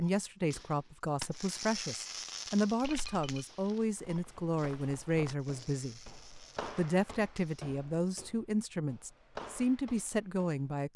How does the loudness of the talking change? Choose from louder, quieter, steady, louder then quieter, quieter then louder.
steady.